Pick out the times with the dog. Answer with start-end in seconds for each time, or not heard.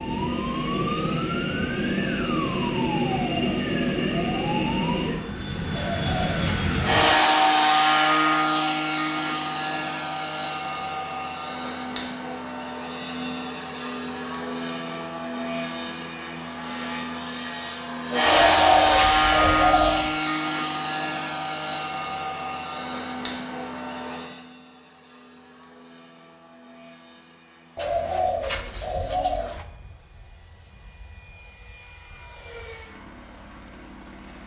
not heard.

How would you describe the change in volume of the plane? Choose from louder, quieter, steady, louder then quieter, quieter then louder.
quieter.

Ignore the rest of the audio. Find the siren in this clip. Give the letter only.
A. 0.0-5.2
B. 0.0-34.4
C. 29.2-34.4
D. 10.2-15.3
A.